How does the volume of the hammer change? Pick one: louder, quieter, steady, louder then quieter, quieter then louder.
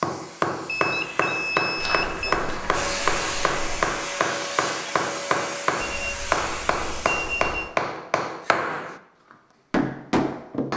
steady.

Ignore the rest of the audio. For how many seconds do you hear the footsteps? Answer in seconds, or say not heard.
2 s.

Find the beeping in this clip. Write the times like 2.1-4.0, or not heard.
0.7-2.4, 5.8-7.7.